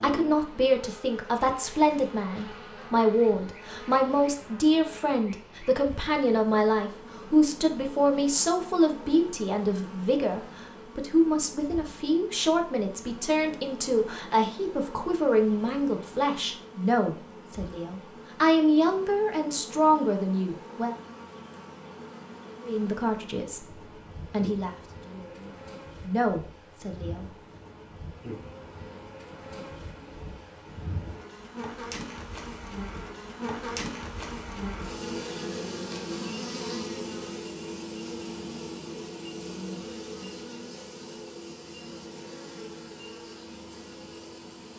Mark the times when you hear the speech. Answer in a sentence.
You can hear the speech from 0.0 to 20.9 s and from 22.6 to 27.2 s.